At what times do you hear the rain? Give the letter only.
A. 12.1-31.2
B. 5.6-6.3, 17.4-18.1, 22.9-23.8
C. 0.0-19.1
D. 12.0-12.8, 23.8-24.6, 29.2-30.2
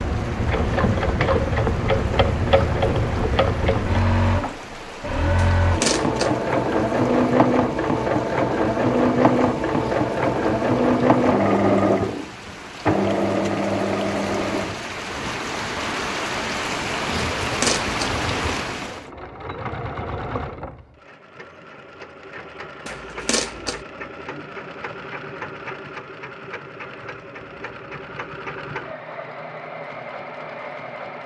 C.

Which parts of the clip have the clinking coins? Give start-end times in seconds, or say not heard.
5.6-6.3, 17.4-18.1, 22.9-23.8.